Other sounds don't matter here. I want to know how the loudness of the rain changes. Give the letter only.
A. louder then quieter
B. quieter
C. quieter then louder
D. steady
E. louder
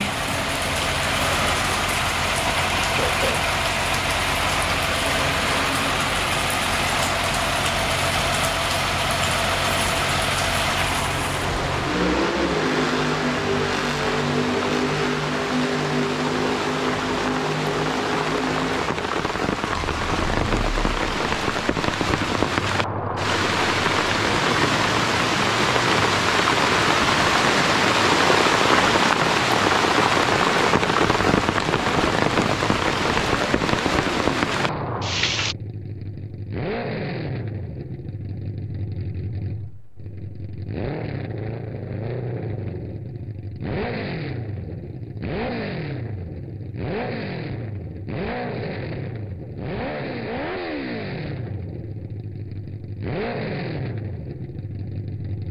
E.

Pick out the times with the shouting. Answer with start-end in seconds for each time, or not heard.
not heard.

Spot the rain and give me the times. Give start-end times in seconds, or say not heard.
0.0-35.5.